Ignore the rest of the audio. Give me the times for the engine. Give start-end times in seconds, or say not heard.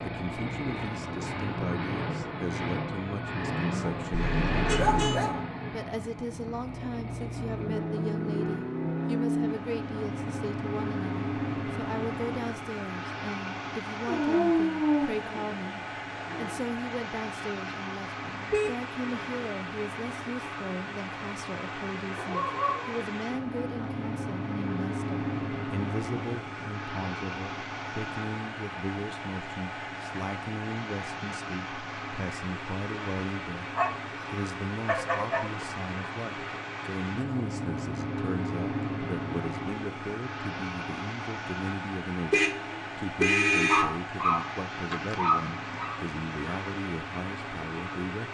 0.0-48.2.